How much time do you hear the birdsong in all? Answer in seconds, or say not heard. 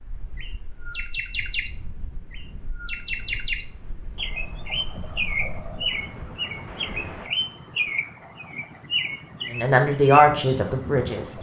11 s.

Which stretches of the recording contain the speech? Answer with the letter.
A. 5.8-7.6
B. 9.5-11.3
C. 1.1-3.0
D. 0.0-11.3
B.